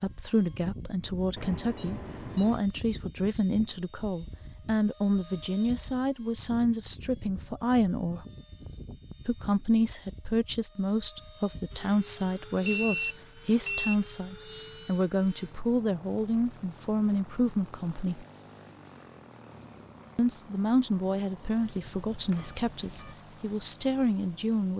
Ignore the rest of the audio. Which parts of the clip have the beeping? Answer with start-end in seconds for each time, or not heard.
1.4-2.6, 12.7-14.1, 21.6-23.1.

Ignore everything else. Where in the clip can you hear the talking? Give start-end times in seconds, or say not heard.
0.0-8.2, 9.2-18.2, 20.1-24.7.